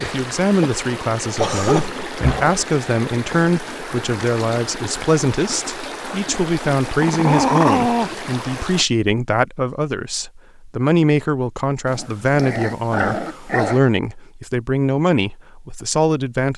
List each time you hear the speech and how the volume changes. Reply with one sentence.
The speech can be heard from 0.0 to 16.5 s, at a steady volume.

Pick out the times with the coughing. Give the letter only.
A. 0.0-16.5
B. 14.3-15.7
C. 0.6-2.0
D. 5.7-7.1
C.